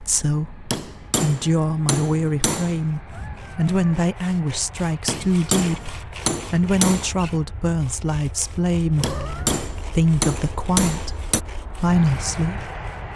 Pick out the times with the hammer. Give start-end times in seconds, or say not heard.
0.7-2.8, 5.0-7.1, 9.0-11.4.